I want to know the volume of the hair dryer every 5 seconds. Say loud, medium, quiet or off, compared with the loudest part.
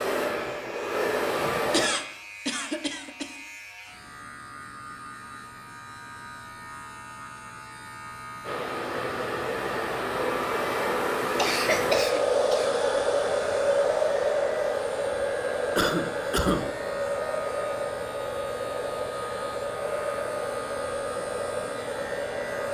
loud, medium, loud, medium, medium.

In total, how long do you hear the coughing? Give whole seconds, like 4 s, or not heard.
4 s.